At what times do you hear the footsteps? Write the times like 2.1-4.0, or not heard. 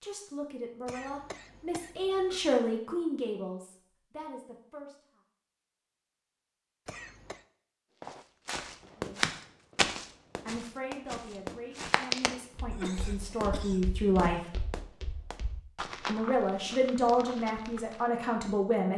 8.1-18.1.